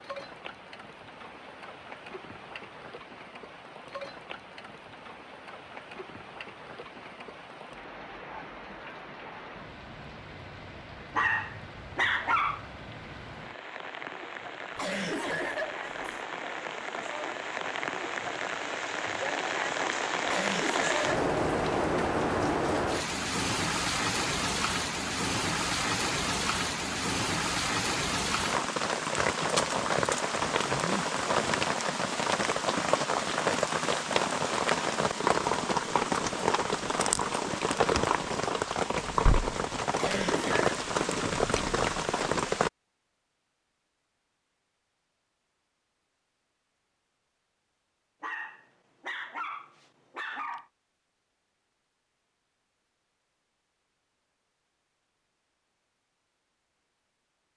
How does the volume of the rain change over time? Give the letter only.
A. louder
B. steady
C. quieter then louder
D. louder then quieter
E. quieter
A.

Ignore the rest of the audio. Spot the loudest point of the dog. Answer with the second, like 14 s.
12 s.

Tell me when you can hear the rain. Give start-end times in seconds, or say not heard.
0.0-42.7.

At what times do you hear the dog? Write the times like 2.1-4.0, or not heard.
11.2-12.7, 48.2-50.6.